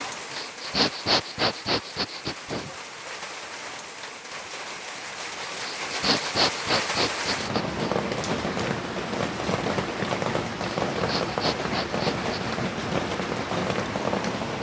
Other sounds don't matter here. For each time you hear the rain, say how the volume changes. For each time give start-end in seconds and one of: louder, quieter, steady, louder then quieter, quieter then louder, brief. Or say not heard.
0.0-14.5 louder.